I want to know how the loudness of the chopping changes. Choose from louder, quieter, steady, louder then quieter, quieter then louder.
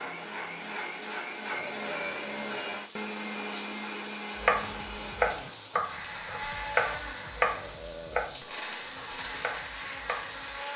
quieter.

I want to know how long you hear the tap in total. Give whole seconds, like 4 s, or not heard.
11 s.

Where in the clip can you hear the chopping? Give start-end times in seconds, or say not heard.
4.3-10.6.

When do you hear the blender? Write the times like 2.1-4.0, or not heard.
0.0-10.7.